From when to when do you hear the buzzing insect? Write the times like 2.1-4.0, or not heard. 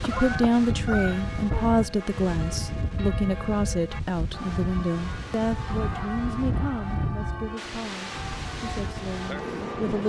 not heard.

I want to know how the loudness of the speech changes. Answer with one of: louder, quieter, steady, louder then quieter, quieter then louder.
quieter.